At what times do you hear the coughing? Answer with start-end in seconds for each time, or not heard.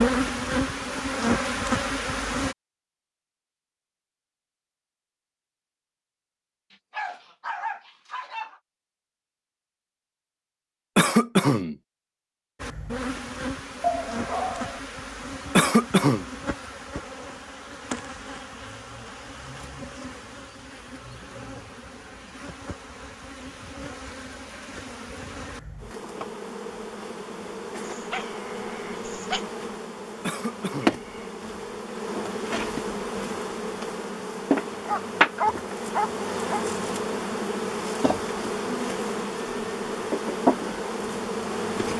10.9-11.8, 15.6-16.2, 30.2-31.1.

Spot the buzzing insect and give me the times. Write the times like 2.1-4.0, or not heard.
0.0-2.5, 12.6-41.9.